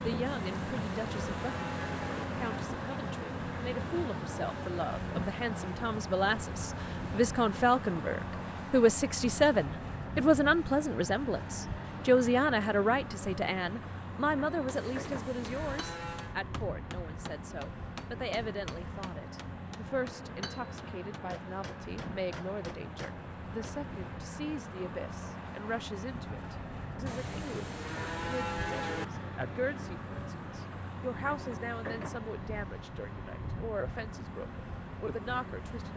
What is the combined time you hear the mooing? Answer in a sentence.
You can hear the mooing for 6 seconds altogether.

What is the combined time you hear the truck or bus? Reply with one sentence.
The truck or bus can be heard for 36 seconds in total.